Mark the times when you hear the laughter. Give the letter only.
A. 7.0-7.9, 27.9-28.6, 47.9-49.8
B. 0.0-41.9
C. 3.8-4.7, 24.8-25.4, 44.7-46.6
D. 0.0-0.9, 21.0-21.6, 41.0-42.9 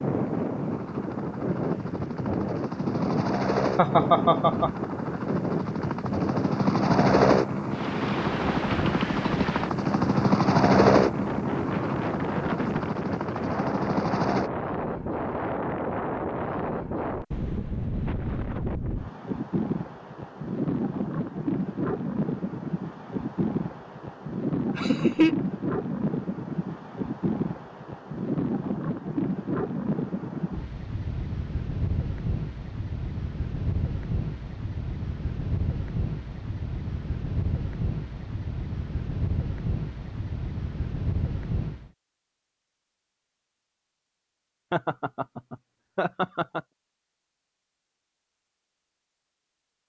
C.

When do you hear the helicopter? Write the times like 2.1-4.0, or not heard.
0.0-14.5.